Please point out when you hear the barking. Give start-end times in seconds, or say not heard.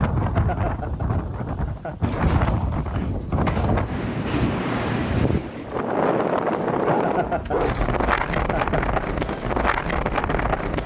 2.0-3.8, 6.2-7.8.